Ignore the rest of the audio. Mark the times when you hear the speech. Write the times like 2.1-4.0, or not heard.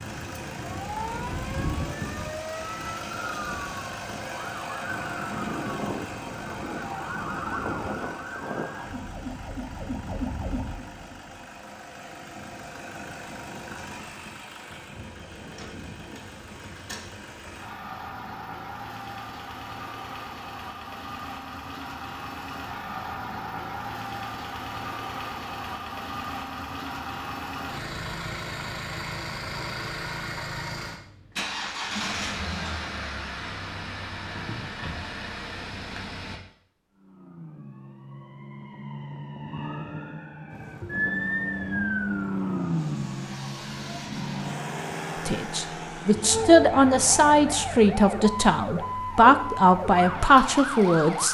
45.2-51.2.